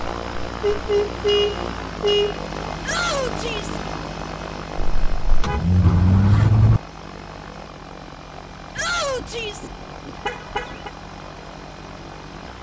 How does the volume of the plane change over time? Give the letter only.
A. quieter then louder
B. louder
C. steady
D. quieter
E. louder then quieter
D.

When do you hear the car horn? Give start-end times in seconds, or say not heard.
0.6-2.4, 4.8-6.8, 9.0-10.9.